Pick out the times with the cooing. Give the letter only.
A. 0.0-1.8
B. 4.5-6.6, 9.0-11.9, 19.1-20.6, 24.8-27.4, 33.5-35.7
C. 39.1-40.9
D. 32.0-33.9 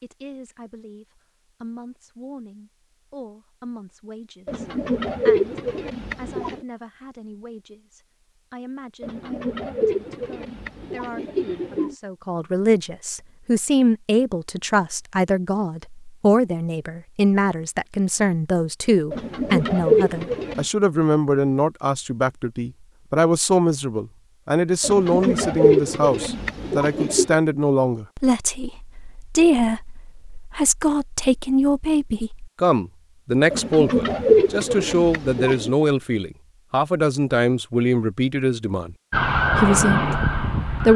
B.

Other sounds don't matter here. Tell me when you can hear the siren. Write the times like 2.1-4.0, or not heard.
39.1-40.9.